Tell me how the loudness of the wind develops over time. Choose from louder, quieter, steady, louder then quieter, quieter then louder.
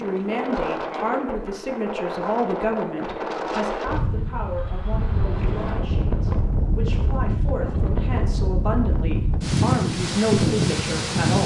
louder.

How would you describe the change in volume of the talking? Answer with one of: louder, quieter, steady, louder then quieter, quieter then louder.
quieter then louder.